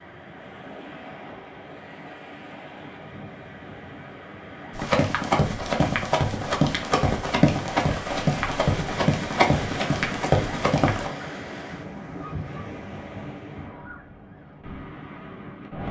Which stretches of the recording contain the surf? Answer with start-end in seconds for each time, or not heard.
0.0-15.8.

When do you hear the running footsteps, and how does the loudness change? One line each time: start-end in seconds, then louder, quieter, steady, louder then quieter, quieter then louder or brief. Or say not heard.
4.8-11.1 steady.